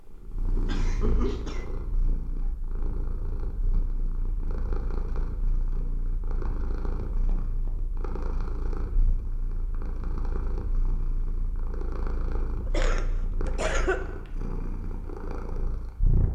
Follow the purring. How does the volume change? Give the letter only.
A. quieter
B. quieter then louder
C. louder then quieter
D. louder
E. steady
E.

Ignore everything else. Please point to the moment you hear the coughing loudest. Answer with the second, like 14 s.
14 s.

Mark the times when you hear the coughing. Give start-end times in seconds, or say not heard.
0.7-1.6, 12.7-14.0.